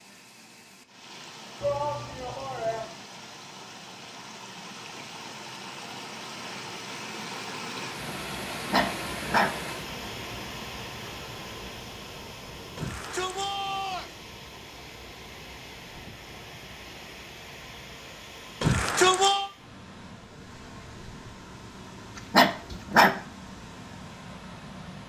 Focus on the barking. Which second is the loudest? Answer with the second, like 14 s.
23 s.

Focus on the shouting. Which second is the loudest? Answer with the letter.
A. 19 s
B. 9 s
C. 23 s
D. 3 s
A.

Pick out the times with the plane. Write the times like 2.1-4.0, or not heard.
not heard.